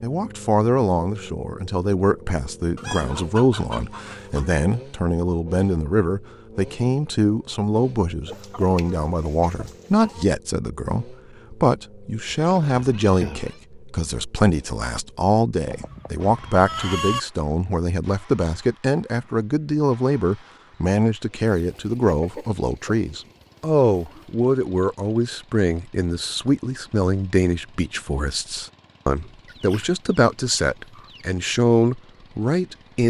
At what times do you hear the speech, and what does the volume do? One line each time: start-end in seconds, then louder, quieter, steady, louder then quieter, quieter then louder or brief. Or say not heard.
0.0-33.0 steady.